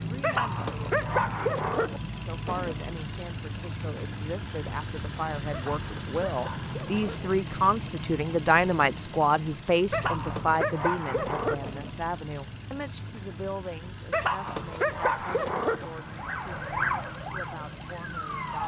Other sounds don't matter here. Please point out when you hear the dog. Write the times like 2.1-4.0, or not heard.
0.2-2.0, 5.5-7.3, 9.9-11.7, 14.1-15.8.